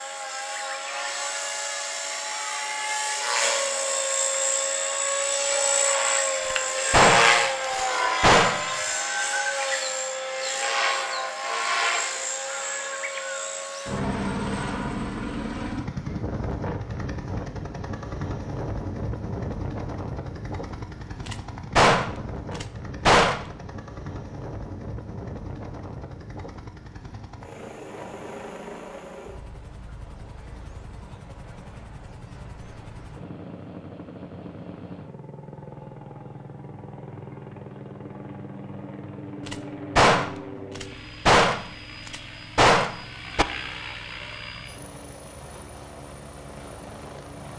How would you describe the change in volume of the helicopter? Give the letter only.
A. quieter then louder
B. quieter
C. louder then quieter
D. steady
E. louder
B.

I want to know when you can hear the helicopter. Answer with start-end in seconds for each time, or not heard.
0.0-47.5.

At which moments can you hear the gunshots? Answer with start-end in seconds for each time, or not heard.
6.5-8.7, 21.2-23.4, 39.5-43.5.